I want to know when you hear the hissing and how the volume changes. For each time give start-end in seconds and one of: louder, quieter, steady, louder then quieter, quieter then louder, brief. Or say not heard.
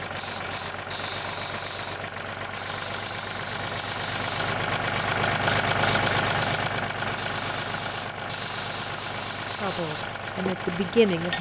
0.1-11.3 steady.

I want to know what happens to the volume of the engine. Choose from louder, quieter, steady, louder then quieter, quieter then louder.
louder then quieter.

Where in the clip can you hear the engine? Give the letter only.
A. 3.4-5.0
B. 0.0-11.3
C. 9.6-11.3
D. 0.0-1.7
B.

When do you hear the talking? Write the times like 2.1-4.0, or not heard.
9.6-11.3.